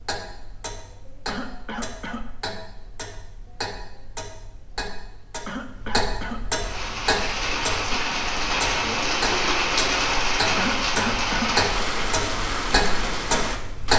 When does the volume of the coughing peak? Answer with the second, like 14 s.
11 s.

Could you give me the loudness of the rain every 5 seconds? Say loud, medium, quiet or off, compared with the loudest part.
off, loud, loud.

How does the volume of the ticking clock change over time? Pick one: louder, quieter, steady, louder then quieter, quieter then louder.
louder.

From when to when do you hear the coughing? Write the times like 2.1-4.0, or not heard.
1.2-2.2, 5.5-6.5, 10.6-11.6.